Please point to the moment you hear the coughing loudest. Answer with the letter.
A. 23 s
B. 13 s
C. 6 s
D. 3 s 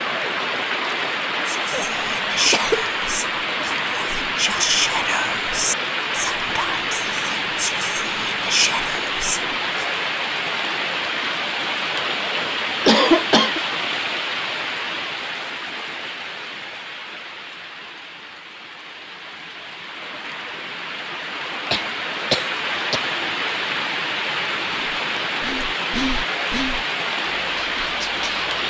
B.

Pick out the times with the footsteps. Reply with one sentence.
You can't hear the footsteps here.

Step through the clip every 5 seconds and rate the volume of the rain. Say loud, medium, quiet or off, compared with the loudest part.
loud, loud, loud, medium, loud, loud.